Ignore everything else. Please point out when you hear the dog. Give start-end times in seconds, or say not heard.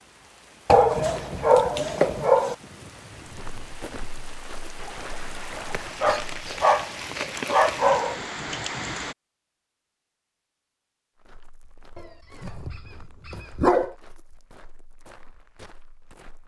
0.7-2.5, 5.7-8.2, 11.9-13.9.